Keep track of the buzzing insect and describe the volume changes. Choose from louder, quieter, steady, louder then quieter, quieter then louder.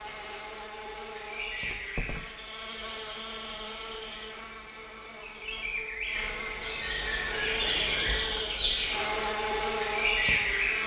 louder.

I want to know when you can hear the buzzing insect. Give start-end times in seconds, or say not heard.
0.0-10.8.